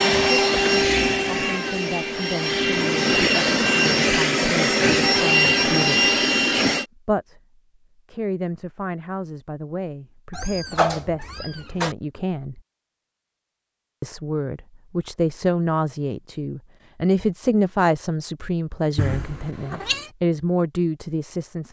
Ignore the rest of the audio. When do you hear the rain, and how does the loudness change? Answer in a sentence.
The rain can't be heard in this clip.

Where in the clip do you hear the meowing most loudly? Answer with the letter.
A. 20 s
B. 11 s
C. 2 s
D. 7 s
B.